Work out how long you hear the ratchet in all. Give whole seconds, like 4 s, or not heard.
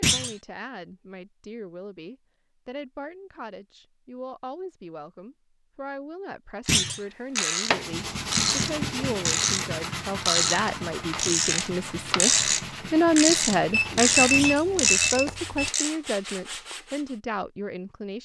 9 s.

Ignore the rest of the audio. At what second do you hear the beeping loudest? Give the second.
14 s.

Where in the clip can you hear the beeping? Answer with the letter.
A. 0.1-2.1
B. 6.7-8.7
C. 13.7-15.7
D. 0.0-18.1
C.